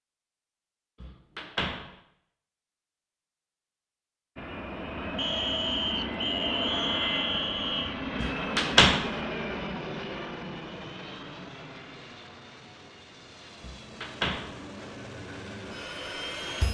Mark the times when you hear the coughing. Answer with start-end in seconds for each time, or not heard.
not heard.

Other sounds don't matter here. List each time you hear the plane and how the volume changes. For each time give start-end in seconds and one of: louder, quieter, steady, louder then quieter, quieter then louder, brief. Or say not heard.
4.3-16.6 quieter then louder.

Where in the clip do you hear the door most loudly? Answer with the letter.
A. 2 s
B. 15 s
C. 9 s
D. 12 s
C.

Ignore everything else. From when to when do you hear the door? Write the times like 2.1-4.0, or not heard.
1.0-1.9, 8.2-9.2, 13.6-14.6.